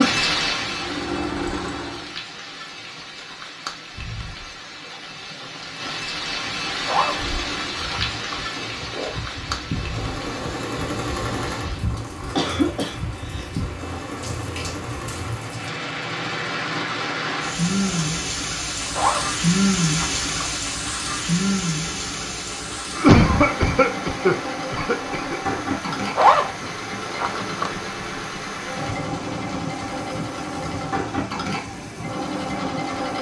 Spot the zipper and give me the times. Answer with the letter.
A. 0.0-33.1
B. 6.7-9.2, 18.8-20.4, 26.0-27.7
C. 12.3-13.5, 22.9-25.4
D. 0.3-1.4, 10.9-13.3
B.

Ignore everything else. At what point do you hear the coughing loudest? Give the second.
23 s.